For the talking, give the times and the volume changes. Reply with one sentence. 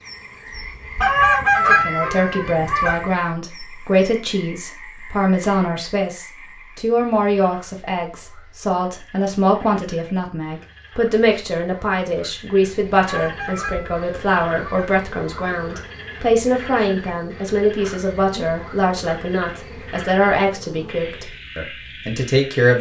The talking can be heard from 1.6 to 22.7 s, at a steady volume.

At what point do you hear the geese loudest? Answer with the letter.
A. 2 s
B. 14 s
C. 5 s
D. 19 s
A.